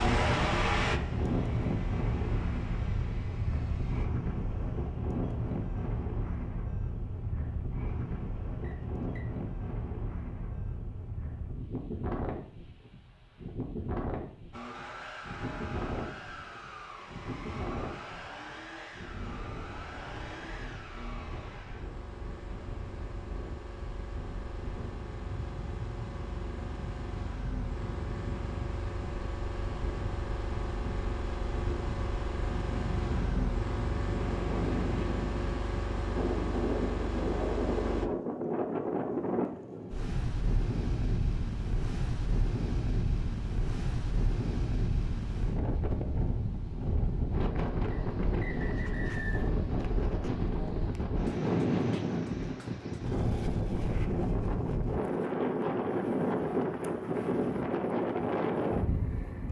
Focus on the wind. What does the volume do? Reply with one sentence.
The volume of the wind goes down, then up.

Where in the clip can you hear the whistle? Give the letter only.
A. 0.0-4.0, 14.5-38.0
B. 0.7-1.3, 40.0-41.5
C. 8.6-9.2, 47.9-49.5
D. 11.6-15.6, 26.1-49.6
C.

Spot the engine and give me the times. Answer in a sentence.
You can hear the engine from 0.0 to 4.0 s and from 14.5 to 38.0 s.